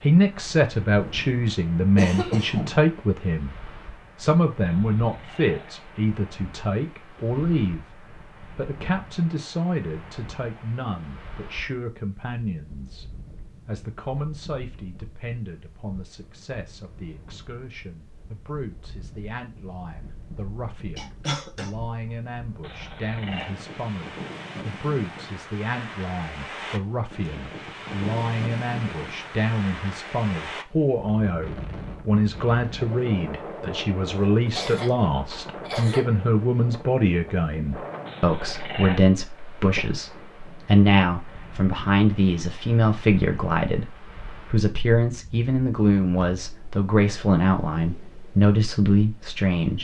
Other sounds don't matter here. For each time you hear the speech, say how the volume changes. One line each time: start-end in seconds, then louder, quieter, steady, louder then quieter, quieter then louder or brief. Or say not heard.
0.0-49.7 quieter then louder.